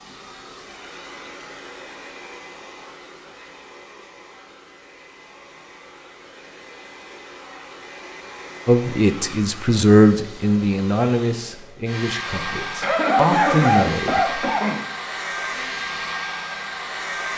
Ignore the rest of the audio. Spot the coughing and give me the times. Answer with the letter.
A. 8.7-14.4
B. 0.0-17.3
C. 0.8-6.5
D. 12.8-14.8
D.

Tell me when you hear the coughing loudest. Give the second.
13 s.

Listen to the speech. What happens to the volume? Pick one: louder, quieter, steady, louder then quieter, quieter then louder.
quieter then louder.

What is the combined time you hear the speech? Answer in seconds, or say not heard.
6 s.